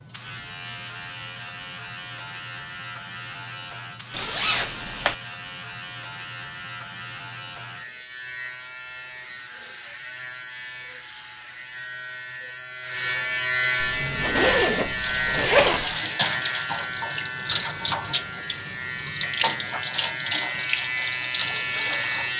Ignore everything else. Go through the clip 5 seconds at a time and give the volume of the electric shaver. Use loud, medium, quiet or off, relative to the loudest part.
medium, medium, loud, loud, loud.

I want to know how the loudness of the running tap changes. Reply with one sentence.
The loudness of the running tap stays about the same.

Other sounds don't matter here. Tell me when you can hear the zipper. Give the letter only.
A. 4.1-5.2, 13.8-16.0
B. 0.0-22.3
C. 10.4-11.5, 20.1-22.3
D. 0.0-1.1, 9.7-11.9
A.